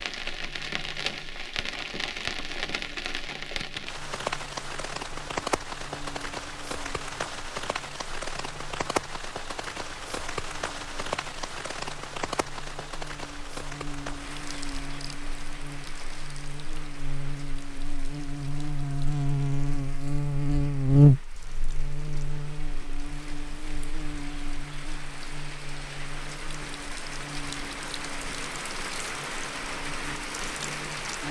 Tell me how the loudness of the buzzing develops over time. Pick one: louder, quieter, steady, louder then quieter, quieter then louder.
louder then quieter.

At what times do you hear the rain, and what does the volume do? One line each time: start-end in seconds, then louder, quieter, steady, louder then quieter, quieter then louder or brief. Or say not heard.
0.0-31.2 quieter then louder.